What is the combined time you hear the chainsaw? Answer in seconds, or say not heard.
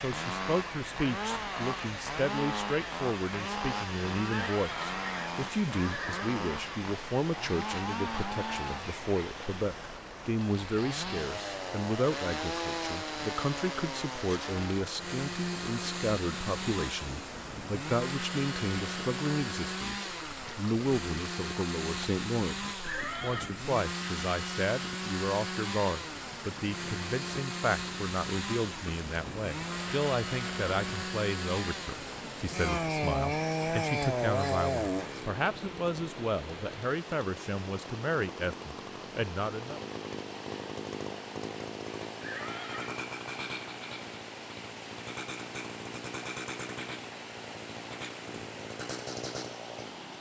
50 s.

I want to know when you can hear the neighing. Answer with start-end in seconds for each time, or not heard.
4.3-6.2, 22.8-23.6, 42.2-43.0.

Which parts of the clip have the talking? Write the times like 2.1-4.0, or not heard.
0.0-39.8.